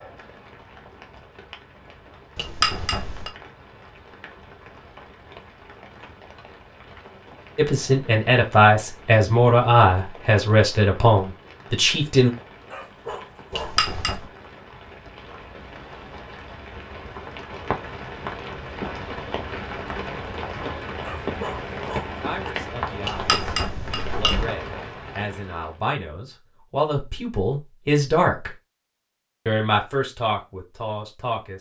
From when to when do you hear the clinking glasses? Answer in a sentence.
You can hear the clinking glasses from 2.4 to 3.3 s, from 13.5 to 14.2 s and from 23.1 to 24.5 s.